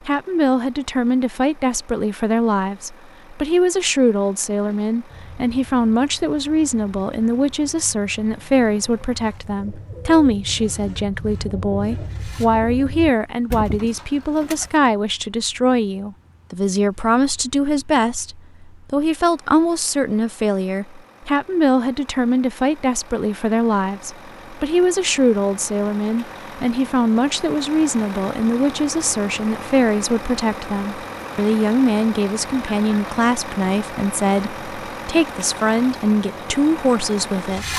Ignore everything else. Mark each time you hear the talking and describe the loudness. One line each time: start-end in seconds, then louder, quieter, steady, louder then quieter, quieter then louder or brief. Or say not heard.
0.1-37.7 steady.